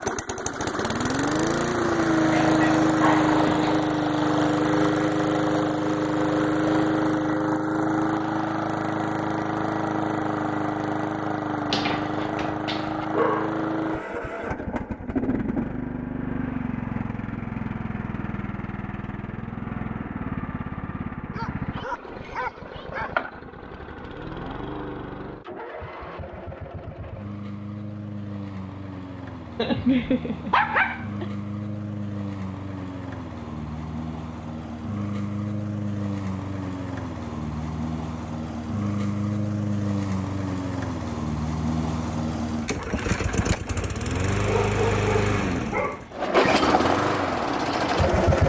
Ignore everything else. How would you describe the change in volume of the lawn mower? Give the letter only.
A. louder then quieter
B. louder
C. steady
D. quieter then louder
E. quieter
D.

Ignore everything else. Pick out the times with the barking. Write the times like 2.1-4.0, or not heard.
2.3-3.8, 11.7-13.5, 21.3-23.2, 29.6-31.2, 44.4-46.3.